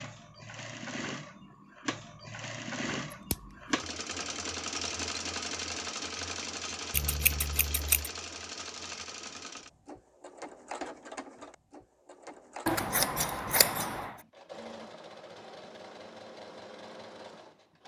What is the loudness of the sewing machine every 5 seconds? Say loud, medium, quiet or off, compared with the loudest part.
loud, loud, medium, medium.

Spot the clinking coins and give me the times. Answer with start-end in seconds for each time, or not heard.
not heard.